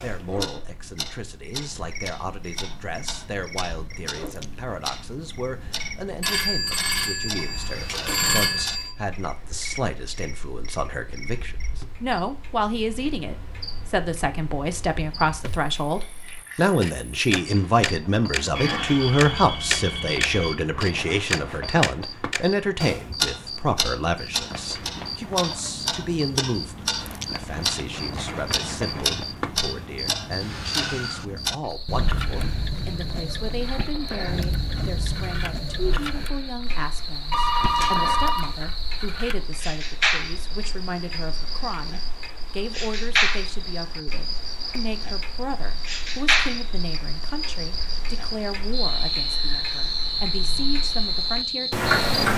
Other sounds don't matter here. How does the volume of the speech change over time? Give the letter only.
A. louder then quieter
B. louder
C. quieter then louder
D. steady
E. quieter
A.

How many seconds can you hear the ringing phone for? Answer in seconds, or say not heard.
6 s.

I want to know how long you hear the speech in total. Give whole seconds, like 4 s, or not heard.
52 s.